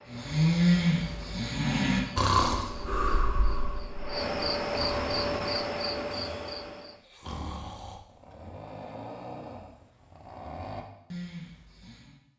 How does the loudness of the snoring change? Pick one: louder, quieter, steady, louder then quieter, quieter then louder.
quieter.